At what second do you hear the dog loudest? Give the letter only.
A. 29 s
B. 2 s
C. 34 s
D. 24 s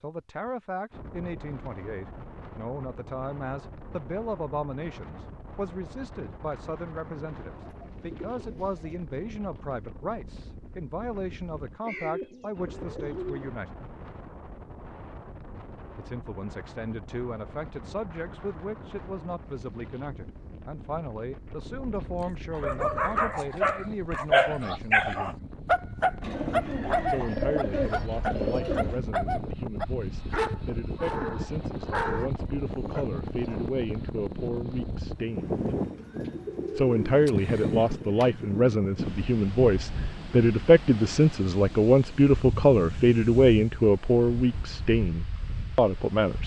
D.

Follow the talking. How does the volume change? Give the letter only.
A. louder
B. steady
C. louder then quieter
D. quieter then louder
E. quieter
A.